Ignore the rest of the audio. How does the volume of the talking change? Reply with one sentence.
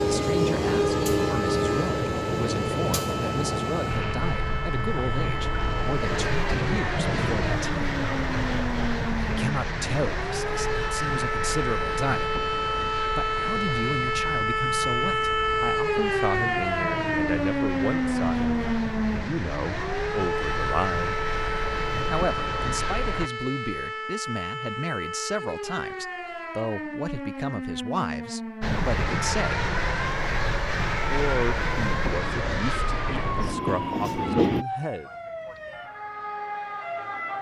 The volume of the talking stays about the same.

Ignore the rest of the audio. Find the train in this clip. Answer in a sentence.
You can hear the train from 0.0 to 23.3 s and from 28.6 to 34.6 s.